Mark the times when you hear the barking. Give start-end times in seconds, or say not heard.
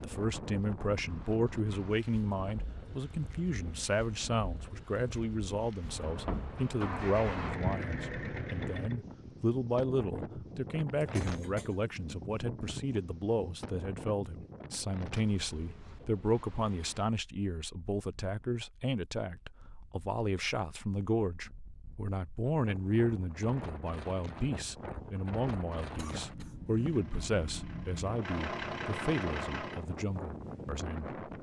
not heard.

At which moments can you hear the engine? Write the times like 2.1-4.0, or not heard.
5.8-9.0, 26.6-29.9.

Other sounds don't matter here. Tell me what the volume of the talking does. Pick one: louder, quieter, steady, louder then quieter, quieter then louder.
steady.